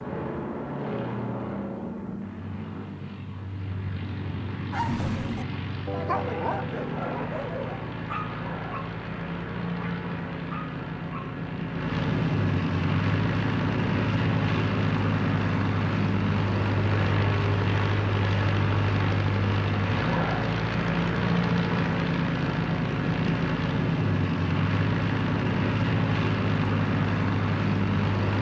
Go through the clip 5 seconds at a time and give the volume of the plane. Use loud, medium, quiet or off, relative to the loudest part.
medium, medium, loud, loud, loud, loud.